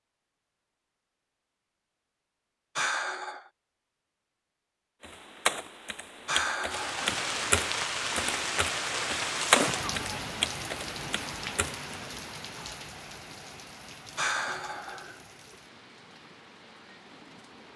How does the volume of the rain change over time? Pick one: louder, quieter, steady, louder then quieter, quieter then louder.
quieter.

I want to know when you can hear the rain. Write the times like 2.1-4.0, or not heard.
6.7-17.7.